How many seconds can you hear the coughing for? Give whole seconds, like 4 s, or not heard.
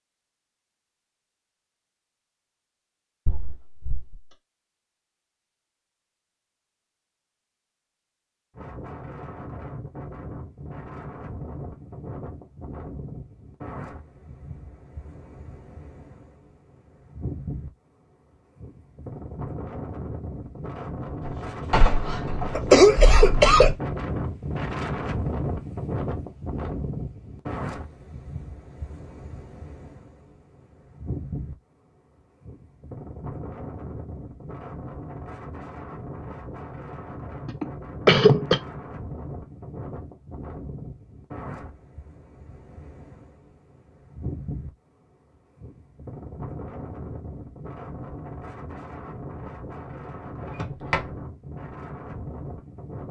2 s.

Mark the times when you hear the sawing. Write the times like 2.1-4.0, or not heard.
not heard.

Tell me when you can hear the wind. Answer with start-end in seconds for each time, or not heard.
8.6-53.0.